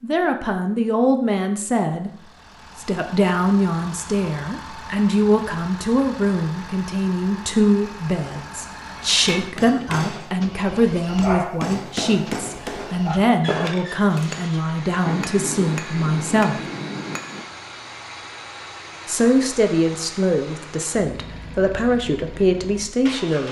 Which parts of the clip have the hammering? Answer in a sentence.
You can hear the hammering from 9.1 to 17.4 s.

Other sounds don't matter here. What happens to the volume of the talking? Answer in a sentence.
The volume of the talking stays about the same.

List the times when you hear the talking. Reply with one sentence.
The talking can be heard from 0.0 to 16.6 s and from 19.1 to 23.4 s.